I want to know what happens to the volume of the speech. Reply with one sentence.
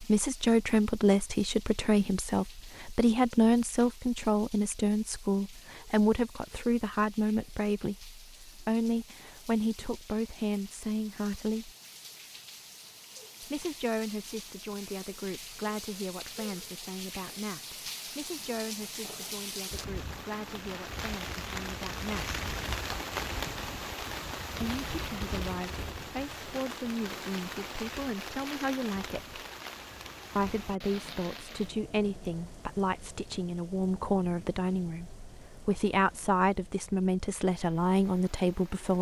The loudness of the speech goes down, then up.